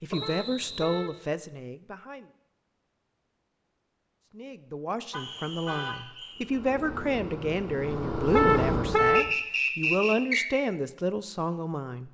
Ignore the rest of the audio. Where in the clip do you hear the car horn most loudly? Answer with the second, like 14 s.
9 s.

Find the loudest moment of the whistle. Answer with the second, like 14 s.
10 s.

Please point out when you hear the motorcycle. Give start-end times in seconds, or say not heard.
6.3-9.2.